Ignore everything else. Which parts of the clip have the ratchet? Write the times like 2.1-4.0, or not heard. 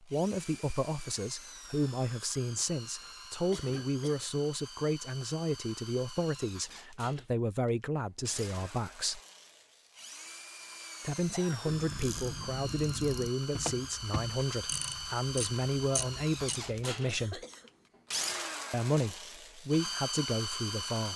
11.7-16.8.